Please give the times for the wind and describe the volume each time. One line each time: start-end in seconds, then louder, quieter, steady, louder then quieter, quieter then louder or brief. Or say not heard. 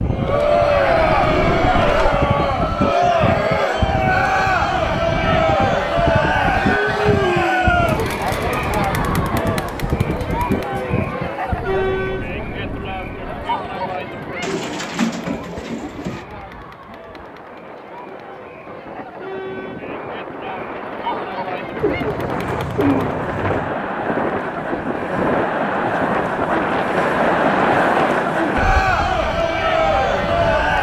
0.0-30.7 quieter then louder.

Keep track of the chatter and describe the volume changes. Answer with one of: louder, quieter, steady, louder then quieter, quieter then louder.
quieter then louder.